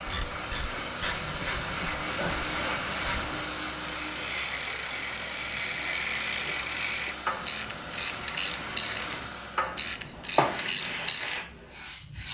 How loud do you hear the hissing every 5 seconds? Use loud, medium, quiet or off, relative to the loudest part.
loud, medium, loud.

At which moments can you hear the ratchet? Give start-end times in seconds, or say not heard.
0.1-11.4.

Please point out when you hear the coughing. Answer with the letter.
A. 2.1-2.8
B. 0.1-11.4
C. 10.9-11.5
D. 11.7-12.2
A.